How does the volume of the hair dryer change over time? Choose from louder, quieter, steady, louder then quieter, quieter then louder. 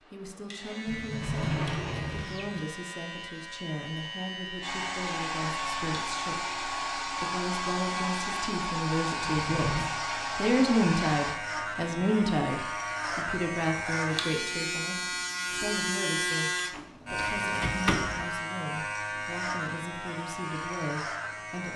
steady.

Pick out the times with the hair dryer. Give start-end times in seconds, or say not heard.
4.6-11.4.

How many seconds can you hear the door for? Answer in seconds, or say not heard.
4 s.